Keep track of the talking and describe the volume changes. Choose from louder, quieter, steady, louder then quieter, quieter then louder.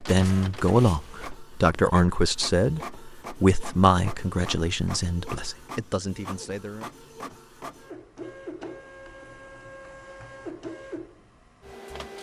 quieter.